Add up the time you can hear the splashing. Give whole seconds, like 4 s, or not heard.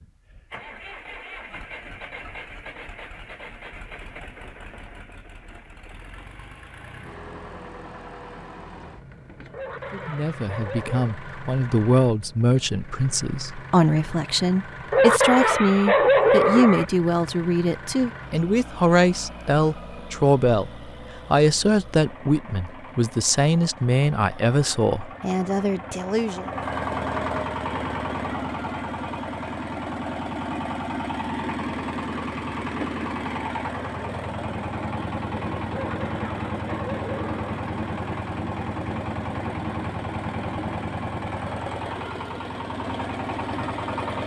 not heard.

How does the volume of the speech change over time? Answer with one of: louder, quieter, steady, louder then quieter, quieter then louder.
steady.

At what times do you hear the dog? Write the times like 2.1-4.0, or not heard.
9.5-11.2, 14.9-16.9, 35.7-37.6.